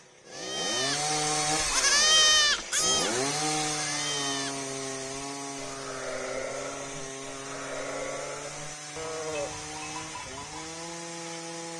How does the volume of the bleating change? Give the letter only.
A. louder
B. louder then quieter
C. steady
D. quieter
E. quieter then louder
D.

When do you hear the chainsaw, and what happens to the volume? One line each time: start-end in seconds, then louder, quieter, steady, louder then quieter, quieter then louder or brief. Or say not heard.
0.0-11.7 quieter.